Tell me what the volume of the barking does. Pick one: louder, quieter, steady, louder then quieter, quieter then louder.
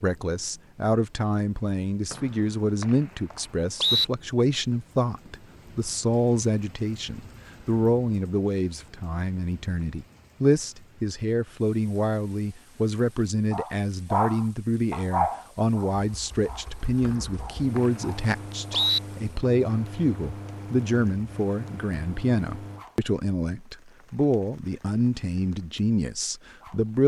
quieter.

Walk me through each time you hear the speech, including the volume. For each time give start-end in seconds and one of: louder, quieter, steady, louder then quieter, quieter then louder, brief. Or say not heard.
0.0-27.0 steady.